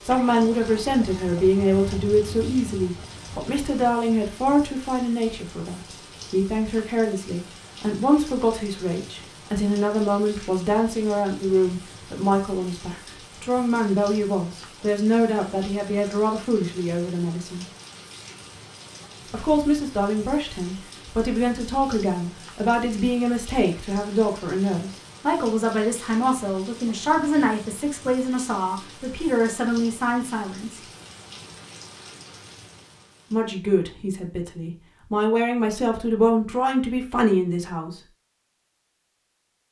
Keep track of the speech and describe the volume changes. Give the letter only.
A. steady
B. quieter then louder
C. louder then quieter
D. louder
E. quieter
A.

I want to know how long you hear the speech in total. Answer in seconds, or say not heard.
34 s.